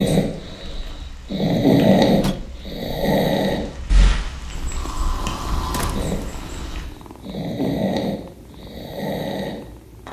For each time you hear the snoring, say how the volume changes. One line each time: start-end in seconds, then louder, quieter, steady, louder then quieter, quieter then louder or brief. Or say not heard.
0.0-10.0 quieter then louder.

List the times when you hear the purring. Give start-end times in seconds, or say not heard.
4.5-10.0.